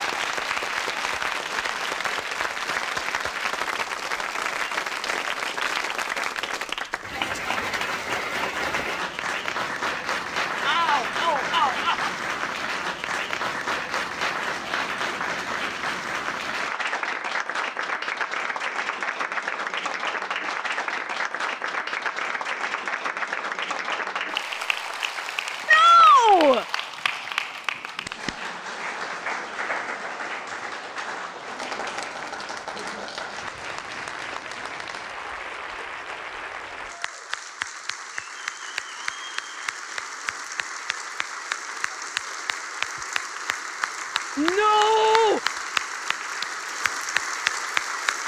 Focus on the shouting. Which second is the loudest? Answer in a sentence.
The volume of the shouting peaks at 26 seconds.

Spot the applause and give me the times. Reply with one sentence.
The applause can be heard from 0.0 to 48.2 s.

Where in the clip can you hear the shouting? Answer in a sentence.
The shouting can be heard from 10.7 to 12.1 s, from 25.6 to 26.6 s and from 44.4 to 45.4 s.